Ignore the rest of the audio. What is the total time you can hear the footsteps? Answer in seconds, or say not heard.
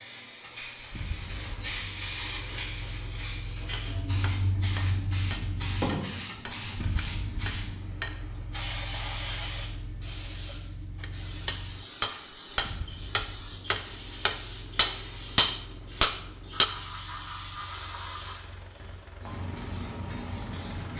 not heard.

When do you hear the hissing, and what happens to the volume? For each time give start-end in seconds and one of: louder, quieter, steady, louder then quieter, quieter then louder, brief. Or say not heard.
0.0-20.9 steady.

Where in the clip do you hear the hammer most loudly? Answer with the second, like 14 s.
16 s.